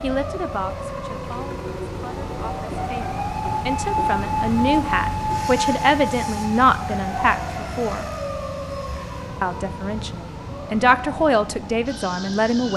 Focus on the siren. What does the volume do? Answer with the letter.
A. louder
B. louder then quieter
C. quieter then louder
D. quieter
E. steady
B.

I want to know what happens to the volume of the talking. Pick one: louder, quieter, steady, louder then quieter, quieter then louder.
louder.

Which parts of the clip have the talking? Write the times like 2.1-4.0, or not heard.
0.0-8.1, 9.4-12.7.